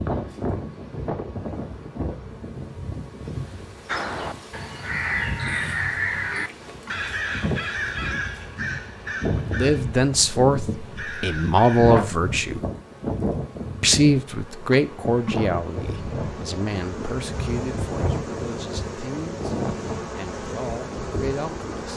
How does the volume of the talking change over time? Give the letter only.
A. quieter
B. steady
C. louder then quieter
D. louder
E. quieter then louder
A.